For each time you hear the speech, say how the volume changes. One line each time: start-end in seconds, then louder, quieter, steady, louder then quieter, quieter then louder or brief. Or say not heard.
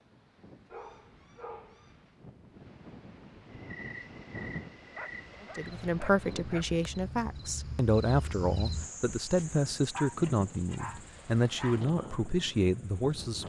5.4-13.4 steady.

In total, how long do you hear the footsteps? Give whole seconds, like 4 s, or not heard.
not heard.